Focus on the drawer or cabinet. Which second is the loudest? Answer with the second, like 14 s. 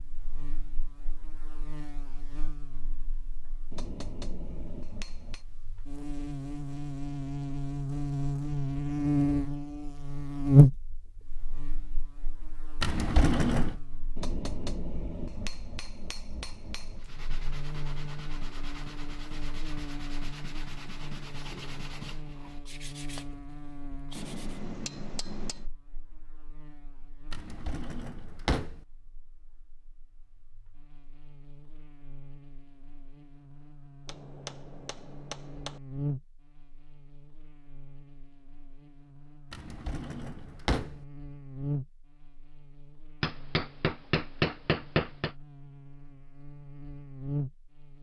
13 s.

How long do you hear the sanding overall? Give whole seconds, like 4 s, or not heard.
8 s.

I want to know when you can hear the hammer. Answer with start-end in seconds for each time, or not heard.
3.7-5.4, 14.2-17.1, 24.1-25.6, 34.0-35.8, 43.2-45.4.